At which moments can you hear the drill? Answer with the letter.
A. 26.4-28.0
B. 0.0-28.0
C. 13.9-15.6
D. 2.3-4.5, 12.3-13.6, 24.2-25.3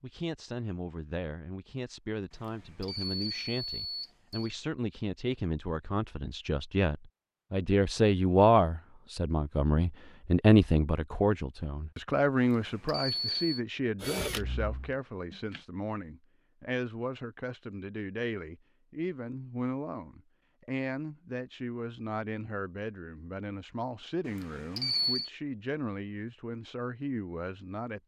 C.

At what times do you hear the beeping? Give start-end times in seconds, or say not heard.
2.3-4.5, 12.3-13.6, 24.2-25.3.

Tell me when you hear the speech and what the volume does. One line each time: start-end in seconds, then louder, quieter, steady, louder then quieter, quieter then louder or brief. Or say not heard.
0.0-28.0 louder then quieter.